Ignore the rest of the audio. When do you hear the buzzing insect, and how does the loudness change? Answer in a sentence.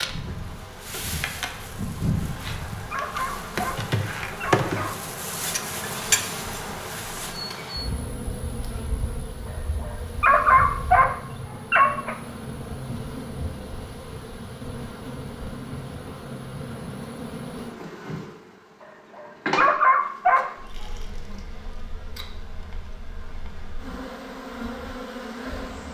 You can hear the buzzing insect from 0.0 to 25.8 s, getting quieter.